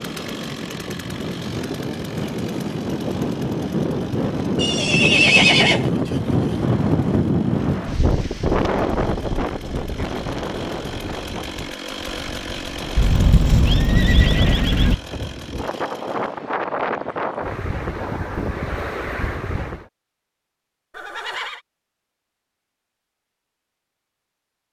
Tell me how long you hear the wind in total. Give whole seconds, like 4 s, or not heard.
20 s.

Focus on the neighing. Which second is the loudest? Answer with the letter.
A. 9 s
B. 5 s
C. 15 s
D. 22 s
B.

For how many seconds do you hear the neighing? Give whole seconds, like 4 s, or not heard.
4 s.